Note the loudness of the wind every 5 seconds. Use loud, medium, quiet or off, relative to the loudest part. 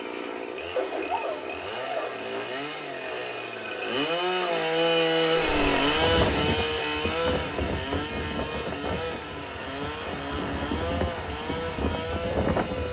off, loud, loud.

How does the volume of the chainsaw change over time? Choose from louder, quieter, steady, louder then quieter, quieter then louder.
louder then quieter.